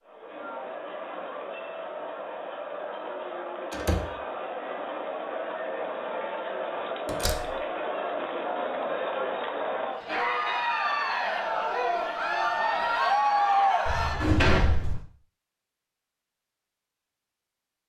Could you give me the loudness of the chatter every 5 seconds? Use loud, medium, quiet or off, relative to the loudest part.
medium, medium, loud, off.